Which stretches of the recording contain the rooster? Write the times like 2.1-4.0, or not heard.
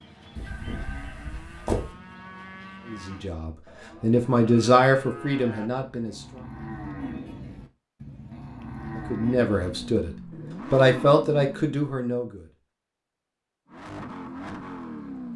0.3-1.9.